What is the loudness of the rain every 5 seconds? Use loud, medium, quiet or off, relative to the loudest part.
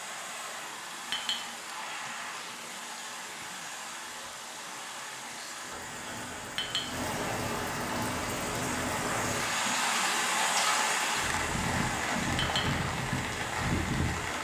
quiet, loud, loud.